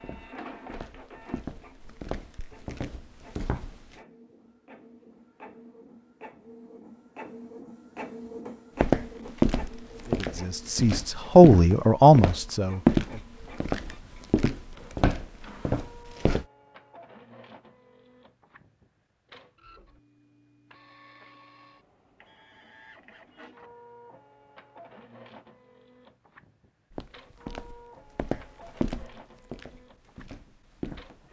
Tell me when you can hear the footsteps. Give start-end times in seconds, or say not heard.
0.0-3.9, 8.8-16.4, 26.9-31.2.